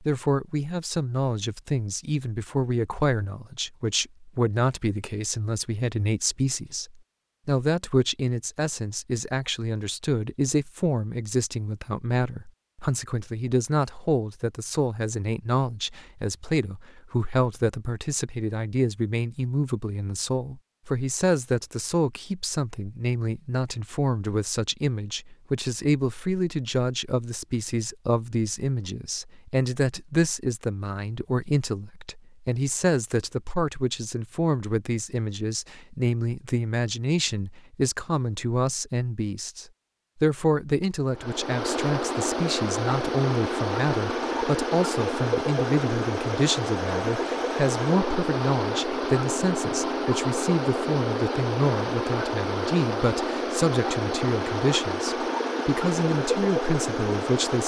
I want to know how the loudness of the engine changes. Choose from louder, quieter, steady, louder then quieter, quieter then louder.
steady.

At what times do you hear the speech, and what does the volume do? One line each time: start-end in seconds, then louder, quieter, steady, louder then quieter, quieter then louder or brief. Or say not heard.
0.0-57.6 steady.